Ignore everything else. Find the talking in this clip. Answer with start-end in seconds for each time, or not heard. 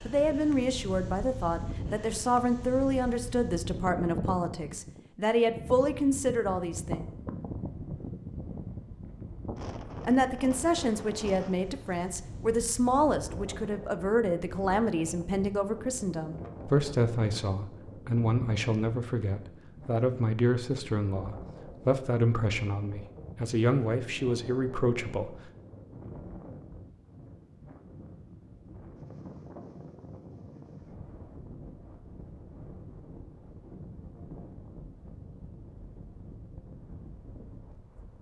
0.1-7.0, 10.1-25.4.